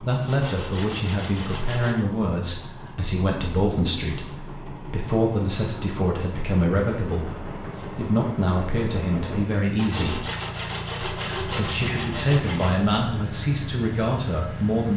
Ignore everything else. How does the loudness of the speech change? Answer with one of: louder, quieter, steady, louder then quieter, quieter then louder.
steady.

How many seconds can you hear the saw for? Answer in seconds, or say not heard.
5 s.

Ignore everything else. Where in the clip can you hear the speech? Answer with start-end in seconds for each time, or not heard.
0.0-10.2, 11.2-14.9.